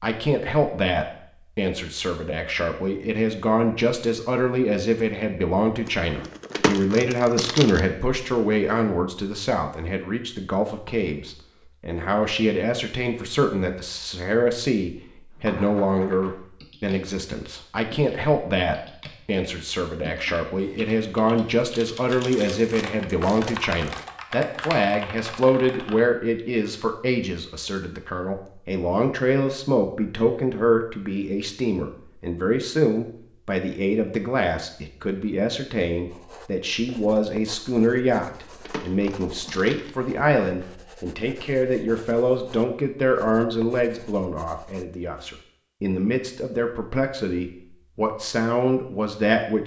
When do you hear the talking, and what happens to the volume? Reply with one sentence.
You can hear the talking from 0.0 to 49.6 s, at a steady volume.